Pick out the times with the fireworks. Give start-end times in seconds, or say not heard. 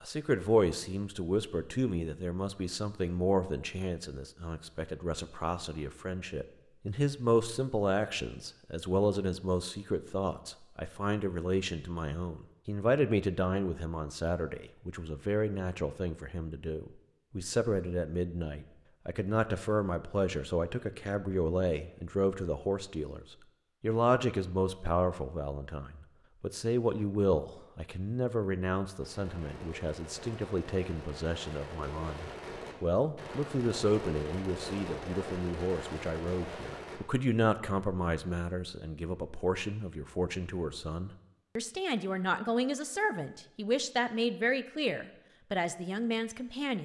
29.0-37.0.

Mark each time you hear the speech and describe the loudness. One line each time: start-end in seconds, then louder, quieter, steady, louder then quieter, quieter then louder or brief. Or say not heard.
0.0-46.7 steady.